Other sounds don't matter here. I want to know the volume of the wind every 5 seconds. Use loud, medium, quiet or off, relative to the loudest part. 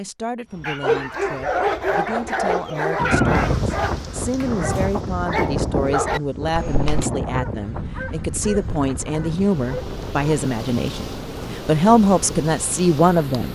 loud, medium, quiet.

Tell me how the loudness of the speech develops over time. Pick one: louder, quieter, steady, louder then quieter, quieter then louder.
louder.